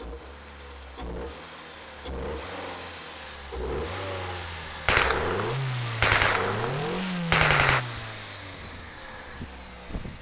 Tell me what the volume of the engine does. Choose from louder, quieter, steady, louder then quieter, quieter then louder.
louder then quieter.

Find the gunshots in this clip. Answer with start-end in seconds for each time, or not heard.
4.8-7.8.